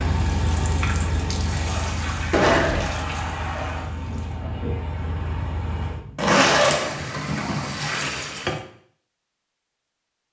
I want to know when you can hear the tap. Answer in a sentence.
You can hear the tap from 0.0 to 8.6 s.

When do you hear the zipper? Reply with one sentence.
The zipper can be heard from 2.3 to 3.0 s and from 6.2 to 8.0 s.